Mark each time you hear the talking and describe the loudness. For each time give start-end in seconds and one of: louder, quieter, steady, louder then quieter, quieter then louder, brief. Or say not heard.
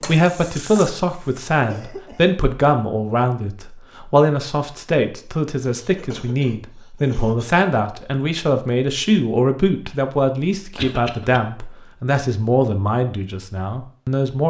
0.0-14.4 steady.